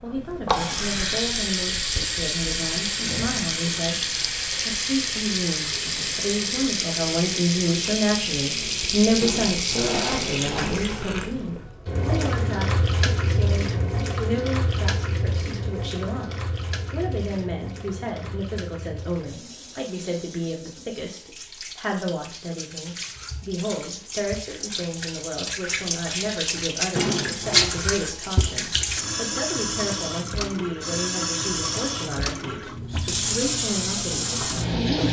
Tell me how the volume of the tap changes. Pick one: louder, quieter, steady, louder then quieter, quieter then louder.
quieter then louder.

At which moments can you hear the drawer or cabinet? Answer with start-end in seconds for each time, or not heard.
9.2-10.8, 26.9-27.7.